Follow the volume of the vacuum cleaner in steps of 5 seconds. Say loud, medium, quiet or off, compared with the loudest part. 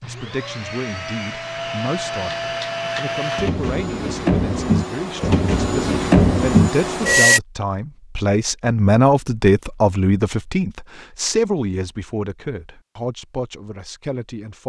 medium, loud, off.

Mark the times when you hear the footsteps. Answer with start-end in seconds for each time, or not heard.
not heard.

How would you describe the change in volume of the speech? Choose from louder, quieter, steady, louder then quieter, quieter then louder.
louder then quieter.